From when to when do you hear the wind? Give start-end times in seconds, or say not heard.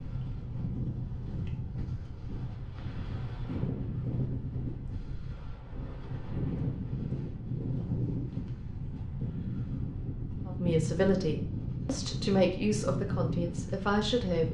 0.0-14.4.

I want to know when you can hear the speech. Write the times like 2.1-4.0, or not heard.
10.4-14.4.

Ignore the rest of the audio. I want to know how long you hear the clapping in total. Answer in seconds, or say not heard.
not heard.